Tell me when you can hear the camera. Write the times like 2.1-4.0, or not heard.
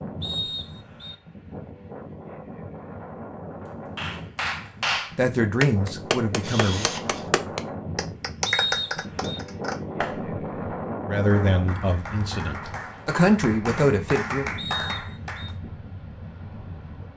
6.4-7.3.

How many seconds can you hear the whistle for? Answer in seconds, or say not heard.
3 s.